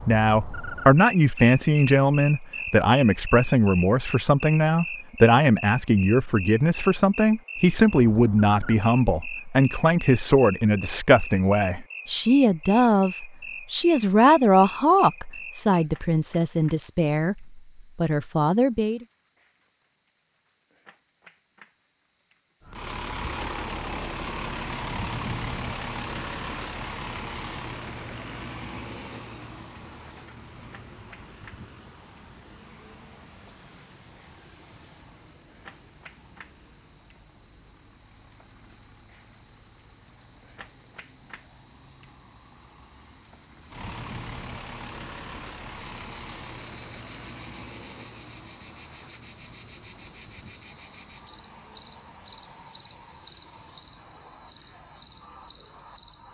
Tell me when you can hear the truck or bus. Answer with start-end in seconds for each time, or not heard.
22.6-56.2.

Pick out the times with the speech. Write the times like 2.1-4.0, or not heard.
0.1-19.1.